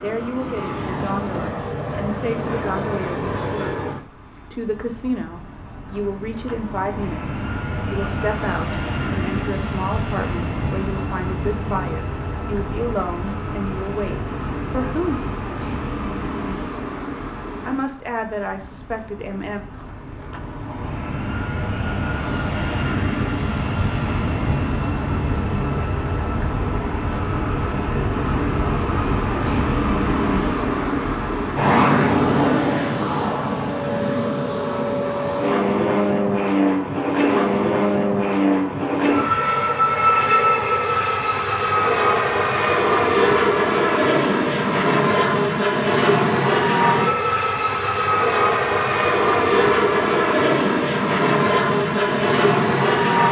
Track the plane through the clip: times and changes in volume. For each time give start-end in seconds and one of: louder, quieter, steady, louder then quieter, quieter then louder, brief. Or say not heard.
0.0-53.2 louder.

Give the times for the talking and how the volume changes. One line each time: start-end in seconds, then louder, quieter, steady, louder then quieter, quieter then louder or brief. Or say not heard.
0.0-15.2 steady
17.6-19.6 brief.